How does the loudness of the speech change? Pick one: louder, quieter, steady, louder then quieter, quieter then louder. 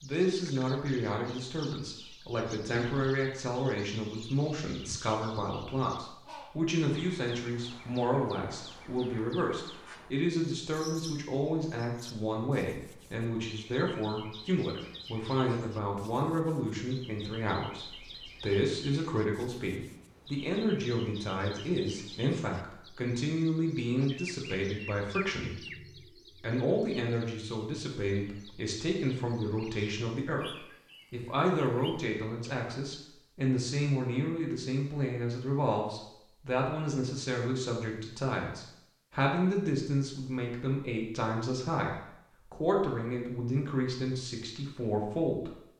steady.